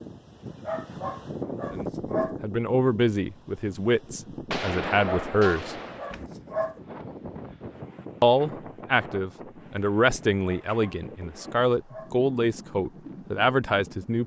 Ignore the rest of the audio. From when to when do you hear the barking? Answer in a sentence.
You can hear the barking from 0.7 to 2.4 s, from 5.0 to 6.8 s and from 10.4 to 12.2 s.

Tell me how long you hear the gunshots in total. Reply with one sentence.
The gunshots can be heard for 2 seconds in total.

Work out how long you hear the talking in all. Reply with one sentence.
The talking can be heard for 10 seconds in total.